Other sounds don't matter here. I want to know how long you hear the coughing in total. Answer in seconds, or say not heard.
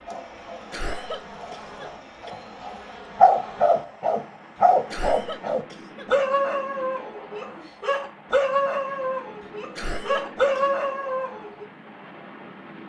4 s.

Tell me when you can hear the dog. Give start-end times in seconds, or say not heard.
0.1-11.7.